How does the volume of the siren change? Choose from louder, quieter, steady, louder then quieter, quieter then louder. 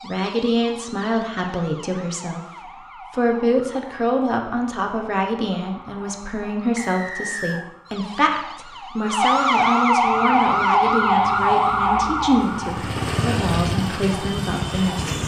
louder.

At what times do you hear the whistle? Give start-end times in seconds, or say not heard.
6.8-7.7.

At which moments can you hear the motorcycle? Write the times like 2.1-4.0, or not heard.
10.1-15.2.